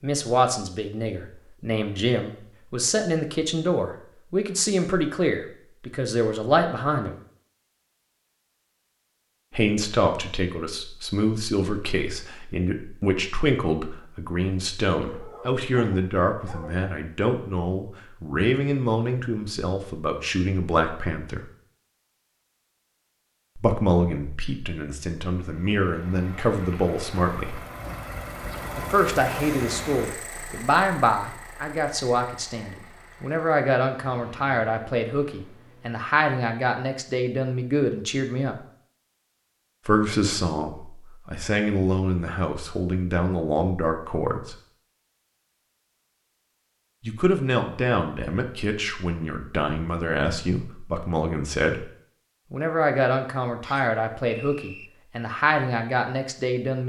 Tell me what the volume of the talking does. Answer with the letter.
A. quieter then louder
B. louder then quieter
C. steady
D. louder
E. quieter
C.